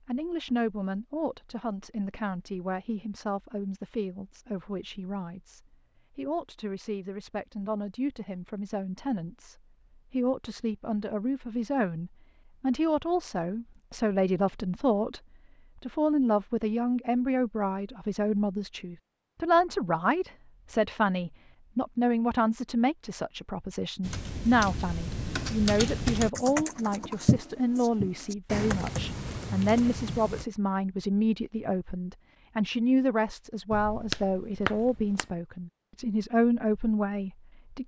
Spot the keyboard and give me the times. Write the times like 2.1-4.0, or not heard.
24.0-30.4.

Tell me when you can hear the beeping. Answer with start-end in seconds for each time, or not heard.
33.7-35.2.